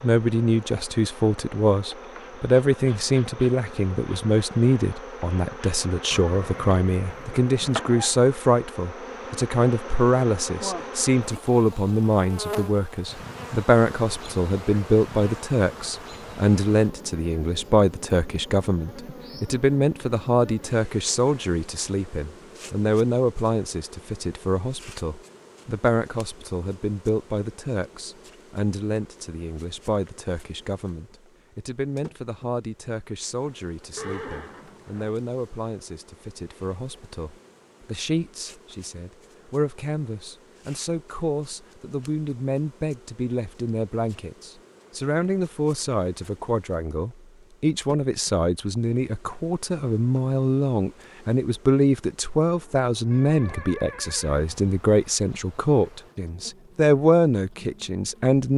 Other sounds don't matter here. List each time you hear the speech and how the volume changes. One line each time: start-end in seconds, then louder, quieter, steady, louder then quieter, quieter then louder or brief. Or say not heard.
0.0-58.5 quieter then louder.